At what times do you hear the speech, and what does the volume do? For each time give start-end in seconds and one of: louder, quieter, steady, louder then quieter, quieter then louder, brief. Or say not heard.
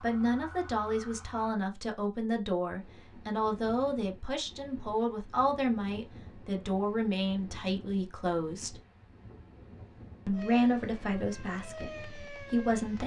0.0-8.8 steady
10.2-13.0 brief.